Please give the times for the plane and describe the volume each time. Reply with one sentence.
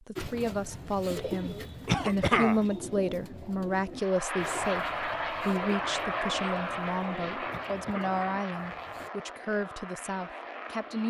The plane can be heard from 4.0 to 11.0 s, getting quieter.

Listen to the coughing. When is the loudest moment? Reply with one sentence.
The volume of the coughing peaks at 2 seconds.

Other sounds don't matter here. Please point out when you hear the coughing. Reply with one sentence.
You can hear the coughing from 1.9 to 2.6 s and from 7.5 to 8.2 s.